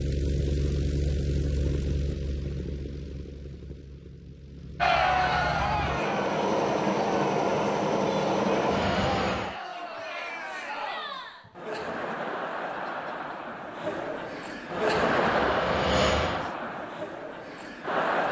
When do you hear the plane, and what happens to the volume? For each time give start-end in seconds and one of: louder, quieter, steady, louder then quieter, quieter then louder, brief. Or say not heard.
0.0-9.6 quieter then louder
14.9-16.6 brief.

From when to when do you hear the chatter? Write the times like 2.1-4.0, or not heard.
4.8-18.2.